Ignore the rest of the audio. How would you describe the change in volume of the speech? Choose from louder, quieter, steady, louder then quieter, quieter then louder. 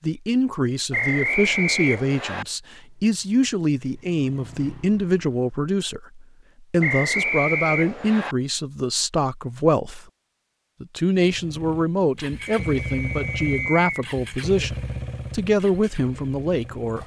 steady.